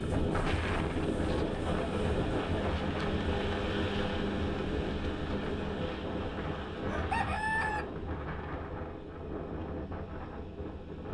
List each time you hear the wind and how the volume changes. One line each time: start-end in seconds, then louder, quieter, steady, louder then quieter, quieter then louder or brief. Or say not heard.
0.0-11.0 quieter.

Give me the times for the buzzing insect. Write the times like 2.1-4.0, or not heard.
not heard.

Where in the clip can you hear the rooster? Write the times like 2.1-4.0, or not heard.
6.8-7.8.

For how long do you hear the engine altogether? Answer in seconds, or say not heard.
11 s.